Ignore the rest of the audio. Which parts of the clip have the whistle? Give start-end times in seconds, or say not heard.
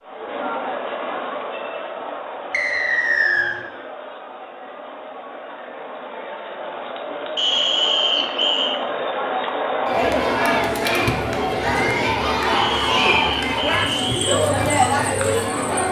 2.5-3.5, 7.3-8.8, 12.6-14.4.